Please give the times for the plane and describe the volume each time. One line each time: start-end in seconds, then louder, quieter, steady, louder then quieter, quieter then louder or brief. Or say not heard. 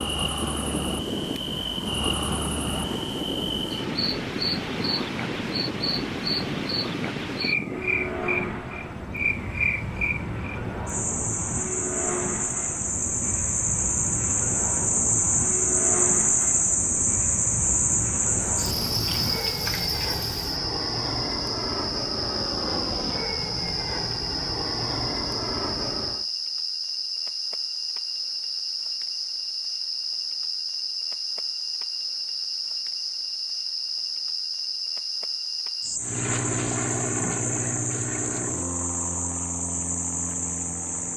0.0-26.2 steady
36.0-41.1 quieter.